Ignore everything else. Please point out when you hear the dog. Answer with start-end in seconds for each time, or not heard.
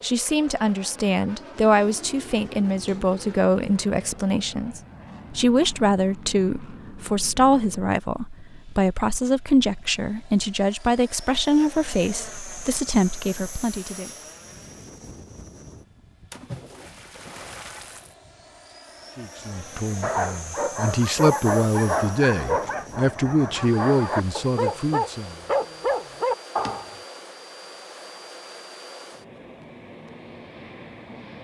20.0-27.0.